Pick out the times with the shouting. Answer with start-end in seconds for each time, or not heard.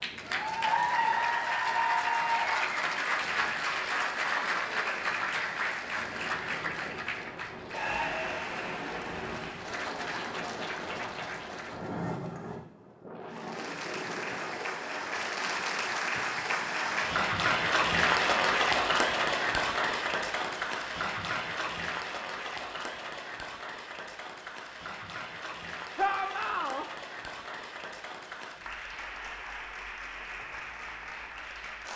25.9-26.9.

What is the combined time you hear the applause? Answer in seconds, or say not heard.
31 s.